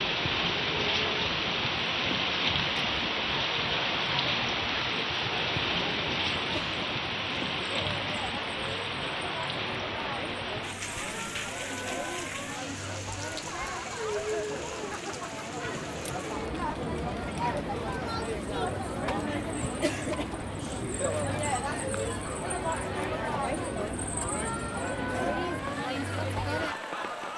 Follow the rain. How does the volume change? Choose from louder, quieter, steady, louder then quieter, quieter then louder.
quieter.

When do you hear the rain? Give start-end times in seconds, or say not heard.
0.0-27.3.